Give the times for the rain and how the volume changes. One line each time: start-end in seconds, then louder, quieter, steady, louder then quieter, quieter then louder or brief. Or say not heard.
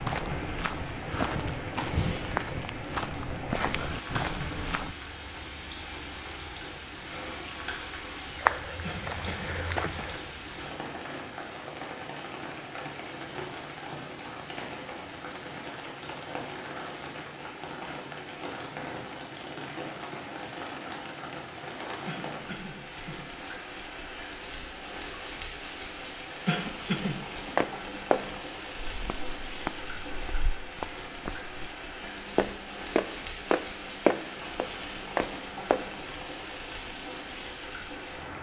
0.0-38.3 steady.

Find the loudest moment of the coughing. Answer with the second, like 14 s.
27 s.